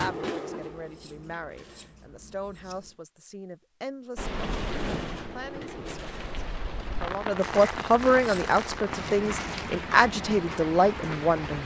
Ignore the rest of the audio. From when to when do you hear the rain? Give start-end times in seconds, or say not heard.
4.2-11.6.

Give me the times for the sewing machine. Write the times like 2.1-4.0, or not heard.
0.0-1.9, 4.4-6.3.